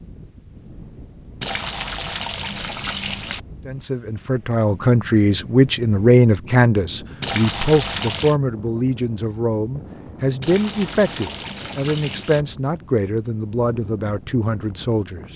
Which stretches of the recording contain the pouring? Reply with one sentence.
You can hear the pouring from 1.4 to 3.4 s, from 7.2 to 8.3 s and from 10.4 to 12.4 s.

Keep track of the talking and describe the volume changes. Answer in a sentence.
The volume of the talking goes down.